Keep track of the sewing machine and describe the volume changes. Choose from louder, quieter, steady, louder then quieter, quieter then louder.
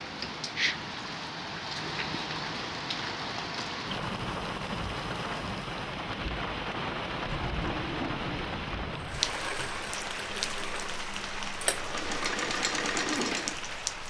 louder.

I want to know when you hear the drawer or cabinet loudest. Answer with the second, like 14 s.
8 s.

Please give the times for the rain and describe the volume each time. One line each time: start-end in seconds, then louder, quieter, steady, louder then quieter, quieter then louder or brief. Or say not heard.
0.0-14.0 steady.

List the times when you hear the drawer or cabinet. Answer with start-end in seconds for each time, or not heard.
7.2-9.2.